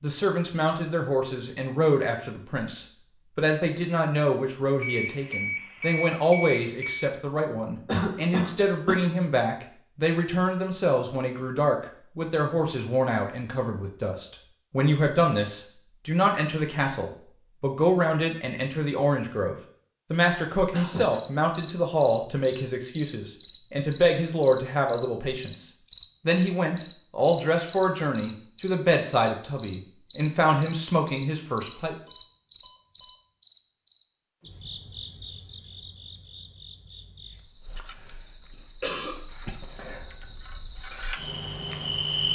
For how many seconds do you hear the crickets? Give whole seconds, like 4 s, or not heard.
21 s.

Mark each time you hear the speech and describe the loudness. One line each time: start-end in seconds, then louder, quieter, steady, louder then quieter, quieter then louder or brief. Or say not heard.
0.0-31.9 steady.